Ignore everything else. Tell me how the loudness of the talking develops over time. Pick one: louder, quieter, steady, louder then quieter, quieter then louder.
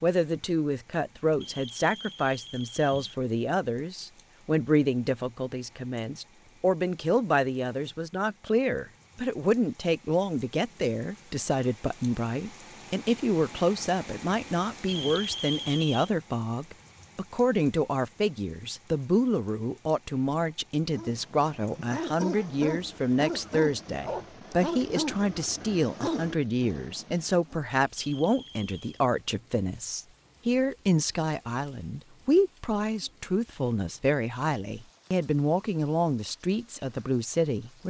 steady.